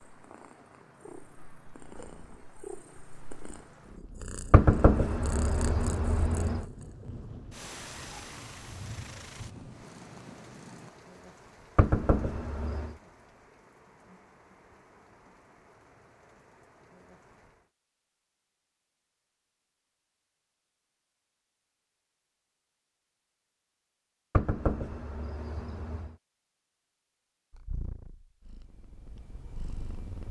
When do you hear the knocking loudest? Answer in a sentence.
The loudest moment of the knocking is at 5 seconds.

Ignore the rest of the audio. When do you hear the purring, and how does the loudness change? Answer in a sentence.
The purring can be heard from 0.1 to 10.9 s, getting louder then quieter; and briefly from 27.5 to 30.2 s.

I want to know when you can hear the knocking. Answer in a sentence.
You can hear the knocking from 4.5 to 6.7 s, from 11.8 to 12.9 s and from 24.3 to 26.1 s.